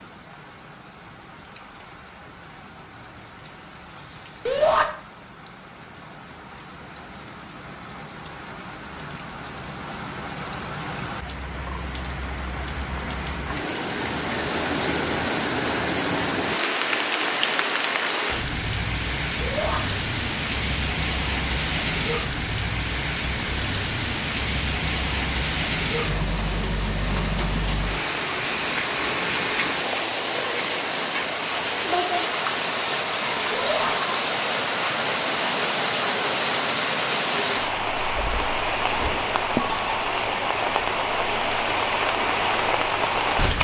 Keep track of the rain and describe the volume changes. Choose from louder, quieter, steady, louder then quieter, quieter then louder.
louder.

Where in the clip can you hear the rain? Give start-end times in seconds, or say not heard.
0.0-43.5.